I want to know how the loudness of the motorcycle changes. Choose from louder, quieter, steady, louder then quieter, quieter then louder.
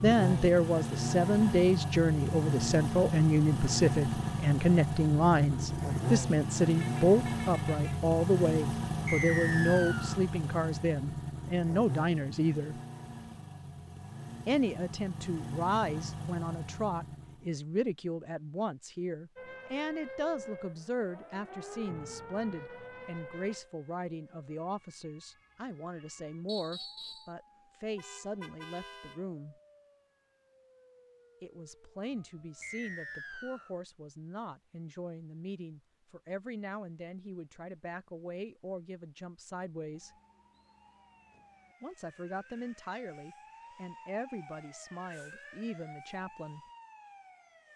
quieter.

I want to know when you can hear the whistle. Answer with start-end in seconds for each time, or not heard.
9.1-10.2, 26.4-27.3, 32.6-33.8.